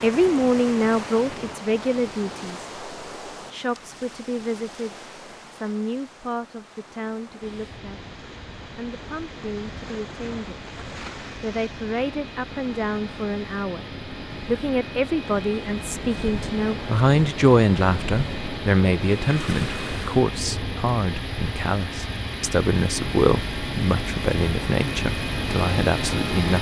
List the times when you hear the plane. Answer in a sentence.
You can hear the plane from 7.4 to 26.5 s.